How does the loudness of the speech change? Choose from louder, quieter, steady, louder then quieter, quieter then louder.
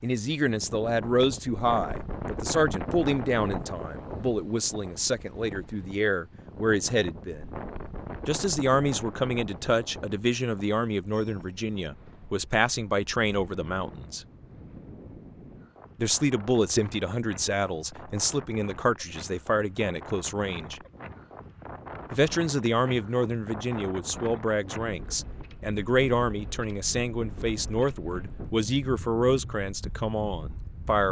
steady.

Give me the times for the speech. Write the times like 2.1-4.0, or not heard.
0.0-7.5, 8.2-14.2, 15.9-20.8, 22.1-31.0.